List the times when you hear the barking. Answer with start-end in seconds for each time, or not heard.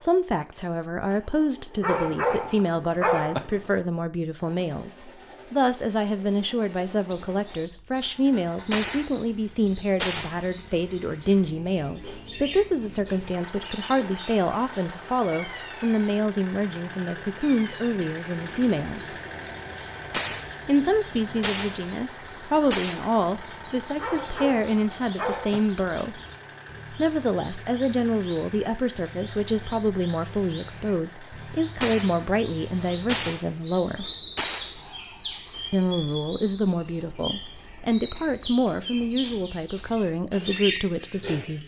1.8-3.4, 24.0-25.6.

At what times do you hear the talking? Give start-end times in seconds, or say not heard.
0.0-19.1, 20.6-26.2, 26.9-34.0, 35.7-41.6.